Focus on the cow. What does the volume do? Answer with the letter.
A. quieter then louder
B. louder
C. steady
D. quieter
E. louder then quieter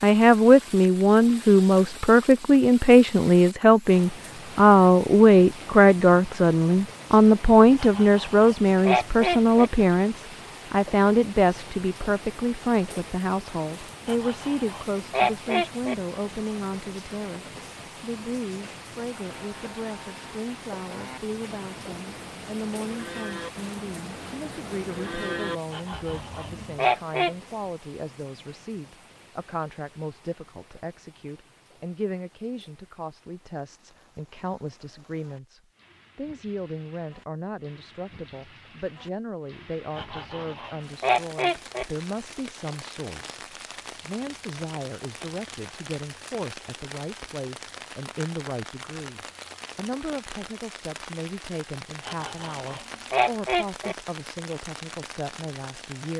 B.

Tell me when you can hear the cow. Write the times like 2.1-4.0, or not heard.
19.3-26.8.